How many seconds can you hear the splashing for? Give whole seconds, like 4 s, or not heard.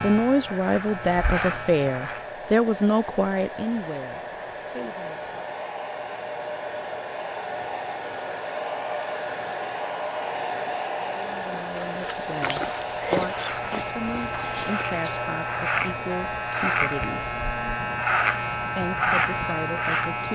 not heard.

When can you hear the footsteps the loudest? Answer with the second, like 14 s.
13 s.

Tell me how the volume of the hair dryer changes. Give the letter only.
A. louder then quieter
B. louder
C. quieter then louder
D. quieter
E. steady
A.